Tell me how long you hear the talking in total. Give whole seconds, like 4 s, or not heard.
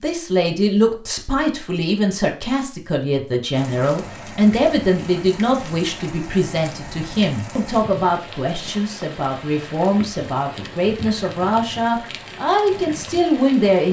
14 s.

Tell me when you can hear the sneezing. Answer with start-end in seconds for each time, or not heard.
not heard.